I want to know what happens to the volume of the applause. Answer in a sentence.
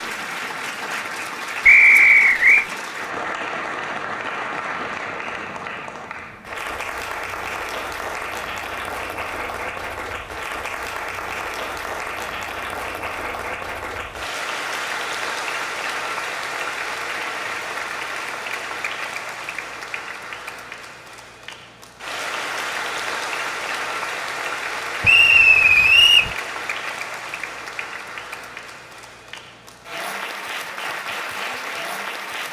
The volume of the applause stays about the same.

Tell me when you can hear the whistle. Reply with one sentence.
The whistle can be heard from 1.6 to 2.6 s and from 25.0 to 26.3 s.